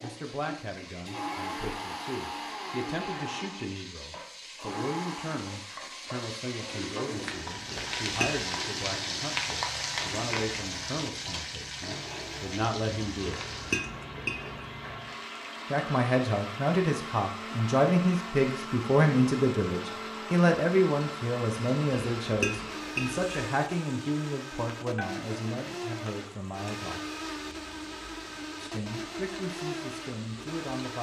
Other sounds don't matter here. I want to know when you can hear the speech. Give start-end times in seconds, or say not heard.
0.0-13.4, 15.7-27.1, 28.6-30.9.